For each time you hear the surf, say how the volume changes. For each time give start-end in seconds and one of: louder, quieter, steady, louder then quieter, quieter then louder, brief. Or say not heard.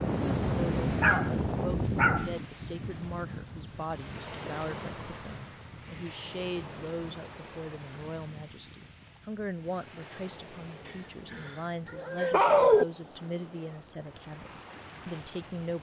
0.0-15.7 quieter.